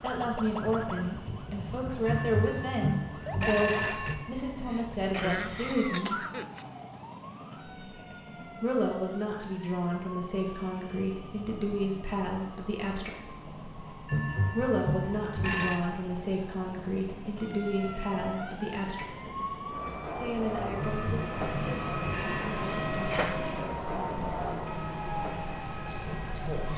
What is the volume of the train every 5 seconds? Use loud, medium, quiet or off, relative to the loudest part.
quiet, quiet, quiet, medium, loud, medium.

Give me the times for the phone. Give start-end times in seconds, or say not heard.
2.0-4.2, 14.1-15.8, 20.8-22.6.